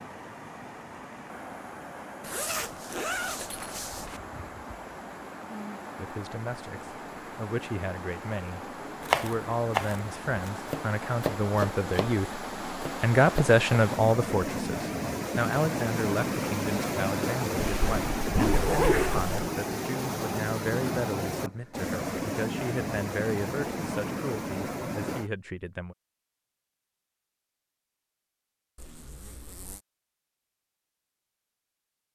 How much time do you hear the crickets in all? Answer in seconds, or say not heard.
not heard.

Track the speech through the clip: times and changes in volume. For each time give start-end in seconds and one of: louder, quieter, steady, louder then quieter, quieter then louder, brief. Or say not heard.
6.0-25.9 louder then quieter.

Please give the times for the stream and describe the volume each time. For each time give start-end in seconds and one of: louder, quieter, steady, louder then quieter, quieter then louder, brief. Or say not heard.
0.0-25.3 louder.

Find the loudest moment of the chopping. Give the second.
9 s.